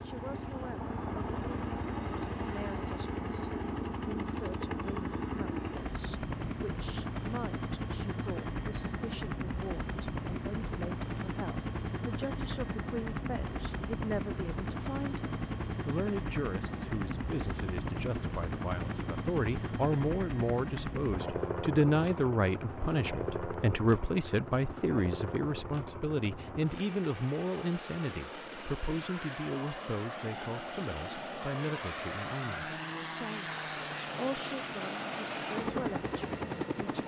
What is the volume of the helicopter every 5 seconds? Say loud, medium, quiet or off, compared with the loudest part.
loud, loud, loud, loud, loud, medium, loud, loud.